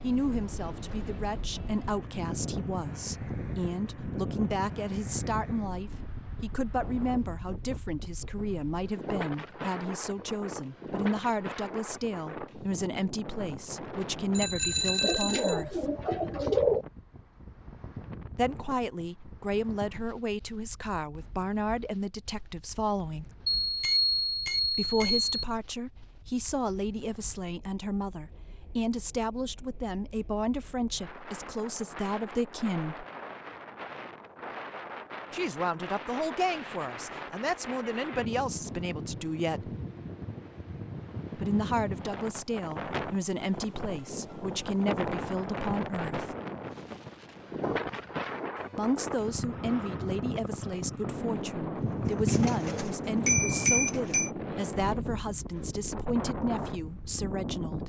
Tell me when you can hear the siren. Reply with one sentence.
The siren can't be heard in this clip.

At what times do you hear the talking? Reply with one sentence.
You can hear the talking from 0.0 to 15.8 s, from 18.4 to 23.3 s, from 24.7 to 33.0 s, from 35.3 to 39.8 s, from 41.4 to 46.4 s and from 48.8 to 57.8 s.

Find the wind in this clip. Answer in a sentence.
You can hear the wind from 0.0 to 57.8 s.